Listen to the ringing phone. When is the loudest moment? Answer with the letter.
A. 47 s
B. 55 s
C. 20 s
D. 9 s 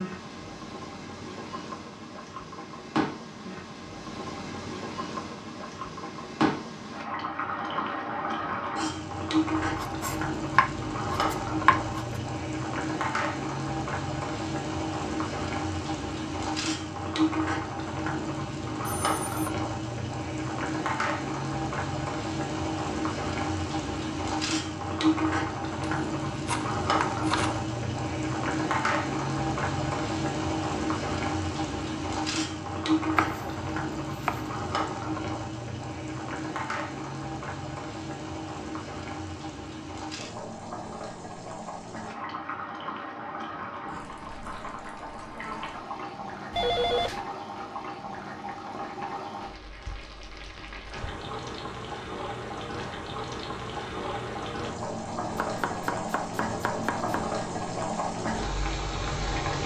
A.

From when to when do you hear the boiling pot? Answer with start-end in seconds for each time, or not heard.
0.0-59.6.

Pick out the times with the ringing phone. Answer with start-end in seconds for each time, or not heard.
18.9-19.5, 46.5-47.2.